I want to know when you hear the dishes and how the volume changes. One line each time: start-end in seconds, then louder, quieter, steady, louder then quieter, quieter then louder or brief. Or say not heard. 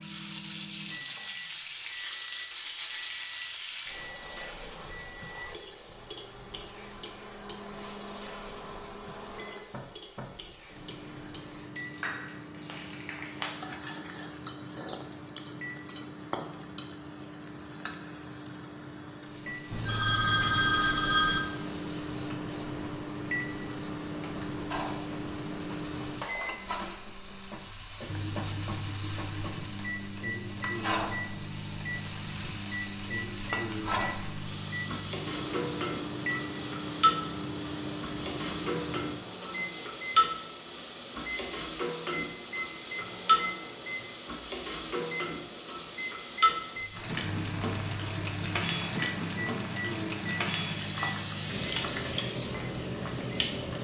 not heard.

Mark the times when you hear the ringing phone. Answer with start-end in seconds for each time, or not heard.
19.7-21.4.